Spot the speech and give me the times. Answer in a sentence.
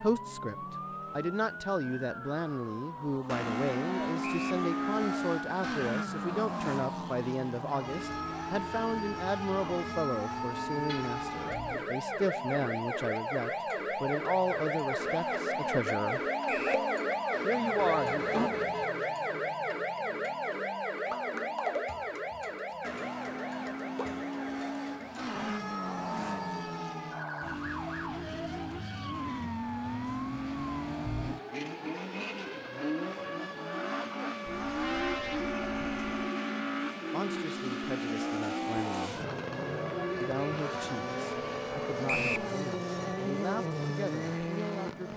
You can hear the speech from 0.0 to 16.2 s, from 17.4 to 18.5 s, from 37.1 to 39.2 s and from 40.2 to 45.1 s.